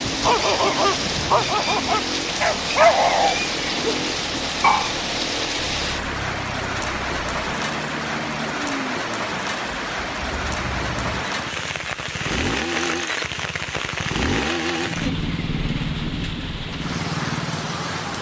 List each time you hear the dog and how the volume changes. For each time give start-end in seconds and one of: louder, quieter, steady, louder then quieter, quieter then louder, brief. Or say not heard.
0.1-5.0 louder then quieter.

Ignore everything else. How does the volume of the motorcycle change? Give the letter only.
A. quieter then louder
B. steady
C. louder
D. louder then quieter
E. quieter
C.